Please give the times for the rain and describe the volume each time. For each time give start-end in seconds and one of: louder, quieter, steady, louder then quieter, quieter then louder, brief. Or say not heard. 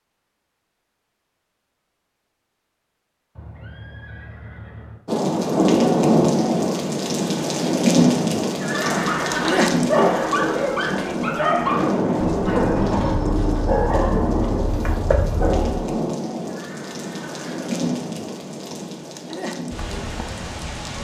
5.0-20.9 quieter.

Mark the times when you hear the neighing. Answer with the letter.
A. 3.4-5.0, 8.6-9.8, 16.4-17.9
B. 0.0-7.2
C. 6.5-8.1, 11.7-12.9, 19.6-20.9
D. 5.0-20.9
A.